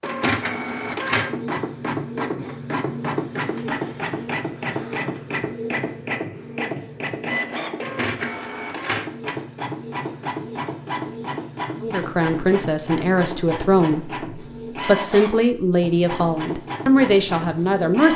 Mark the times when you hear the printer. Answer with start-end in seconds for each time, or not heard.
0.0-18.1.